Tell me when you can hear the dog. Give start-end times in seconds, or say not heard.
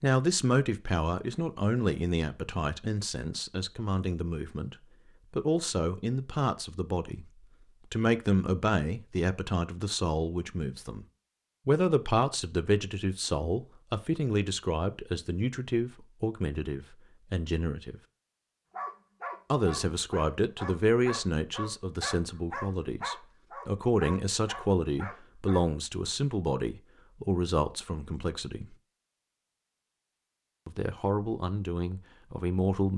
18.7-25.6.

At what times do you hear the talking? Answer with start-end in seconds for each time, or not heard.
0.0-11.1, 11.7-17.9, 19.5-28.8, 30.6-32.9.